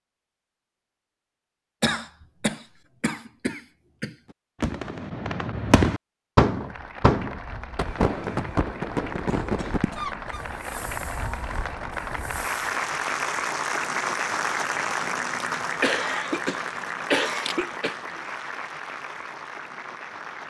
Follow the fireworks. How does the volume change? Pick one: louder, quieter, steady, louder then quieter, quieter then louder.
quieter.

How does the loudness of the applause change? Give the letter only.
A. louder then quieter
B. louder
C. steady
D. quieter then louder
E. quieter
A.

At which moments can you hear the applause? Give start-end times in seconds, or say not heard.
6.7-20.4.